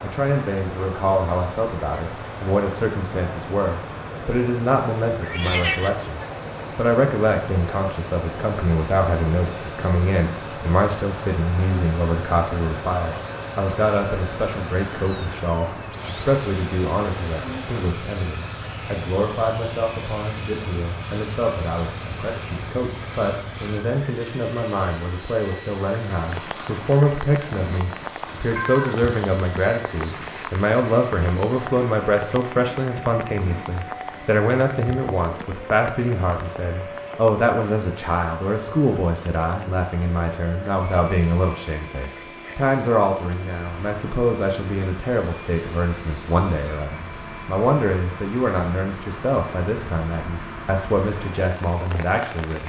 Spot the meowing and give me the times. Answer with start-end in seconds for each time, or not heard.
5.2-6.2, 28.6-29.1.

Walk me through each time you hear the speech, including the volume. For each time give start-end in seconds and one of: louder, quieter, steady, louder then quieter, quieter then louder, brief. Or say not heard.
0.0-52.6 steady.